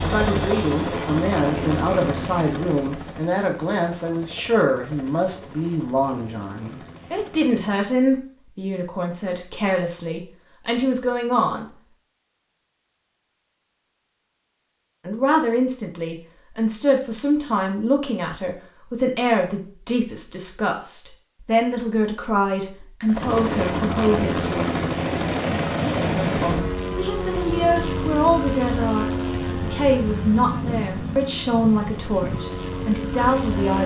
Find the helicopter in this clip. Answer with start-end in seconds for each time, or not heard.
0.0-8.0, 23.1-33.8.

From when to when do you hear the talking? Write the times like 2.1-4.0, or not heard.
0.0-11.7, 15.1-24.6, 26.1-33.8.